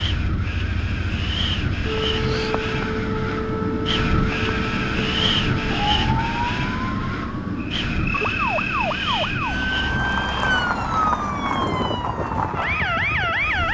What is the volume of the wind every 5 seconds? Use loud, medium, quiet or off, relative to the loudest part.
loud, loud, medium.